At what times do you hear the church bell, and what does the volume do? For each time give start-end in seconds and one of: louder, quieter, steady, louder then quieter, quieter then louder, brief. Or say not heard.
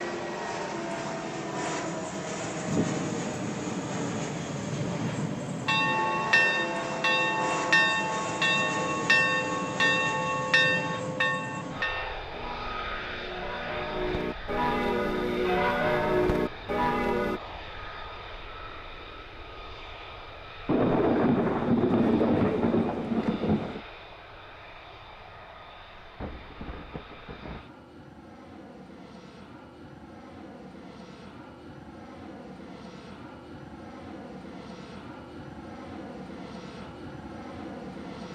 5.7-17.4 quieter then louder.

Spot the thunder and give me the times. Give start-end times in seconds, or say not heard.
2.6-6.5, 20.6-23.8, 26.2-27.6.